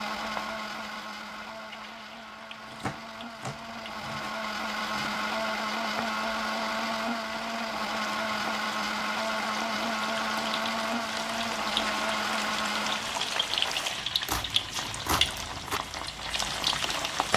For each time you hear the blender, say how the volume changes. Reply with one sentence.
You can hear the blender from 0.0 to 13.2 s, getting louder.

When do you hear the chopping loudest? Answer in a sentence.
The loudest moment of the chopping is at 15 seconds.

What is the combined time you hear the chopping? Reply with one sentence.
The chopping can be heard for 4 seconds in total.